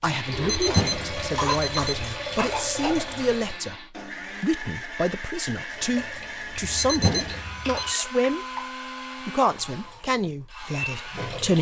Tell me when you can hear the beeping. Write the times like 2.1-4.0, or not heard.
0.4-2.1, 6.6-8.0.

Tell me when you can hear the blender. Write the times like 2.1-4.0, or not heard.
0.0-11.5.